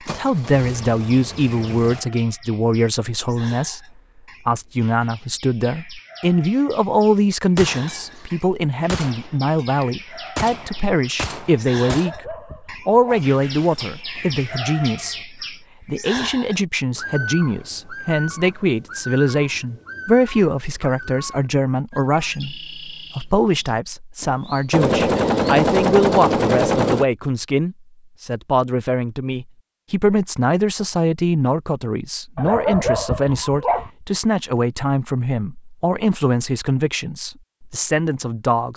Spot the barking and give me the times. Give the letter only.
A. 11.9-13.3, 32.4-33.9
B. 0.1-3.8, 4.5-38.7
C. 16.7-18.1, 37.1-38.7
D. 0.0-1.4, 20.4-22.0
A.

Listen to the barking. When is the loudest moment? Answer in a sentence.
The volume of the barking peaks at 33 seconds.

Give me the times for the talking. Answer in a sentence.
The talking can be heard from 0.1 to 3.8 s and from 4.5 to 38.7 s.